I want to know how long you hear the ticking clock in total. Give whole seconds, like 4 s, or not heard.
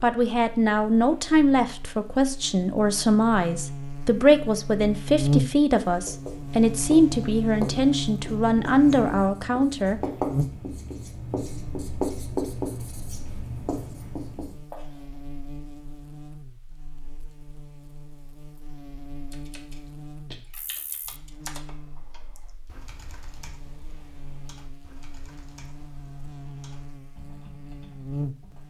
not heard.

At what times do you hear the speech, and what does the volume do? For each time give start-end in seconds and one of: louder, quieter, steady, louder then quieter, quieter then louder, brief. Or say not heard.
0.0-10.0 steady.